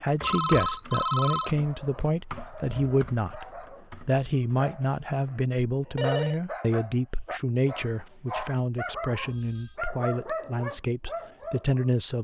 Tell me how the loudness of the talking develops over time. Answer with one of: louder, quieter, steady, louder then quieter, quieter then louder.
steady.